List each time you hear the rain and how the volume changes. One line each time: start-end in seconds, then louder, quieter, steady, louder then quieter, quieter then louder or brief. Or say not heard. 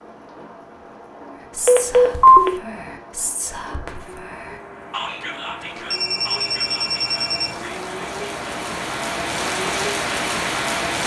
0.0-11.0 louder.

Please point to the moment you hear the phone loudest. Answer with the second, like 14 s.
2 s.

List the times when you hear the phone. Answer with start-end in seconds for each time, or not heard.
1.6-2.5, 5.9-7.5.